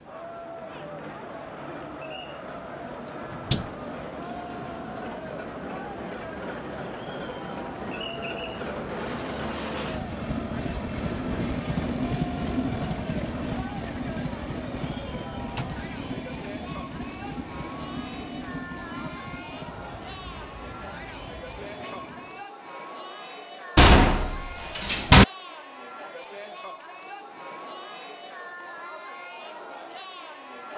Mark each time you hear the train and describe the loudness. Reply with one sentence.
The train can be heard from 0.0 to 22.5 s, getting louder then quieter.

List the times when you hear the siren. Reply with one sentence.
You can't hear the siren here.